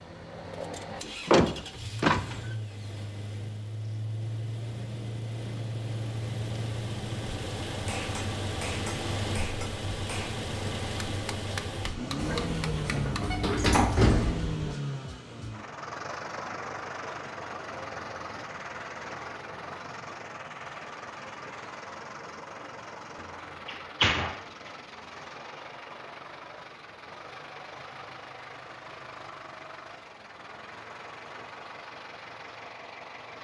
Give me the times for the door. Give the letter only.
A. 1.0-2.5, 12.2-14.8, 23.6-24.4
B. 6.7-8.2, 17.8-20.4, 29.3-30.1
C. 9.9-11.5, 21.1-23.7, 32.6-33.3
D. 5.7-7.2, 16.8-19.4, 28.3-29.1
A.